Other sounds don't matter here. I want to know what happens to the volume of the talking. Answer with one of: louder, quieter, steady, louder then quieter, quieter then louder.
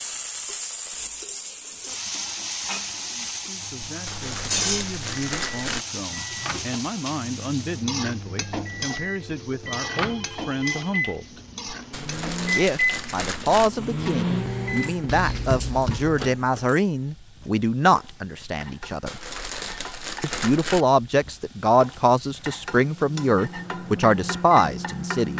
louder.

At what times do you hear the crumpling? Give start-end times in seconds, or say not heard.
3.9-5.8, 11.7-13.7, 18.9-20.9.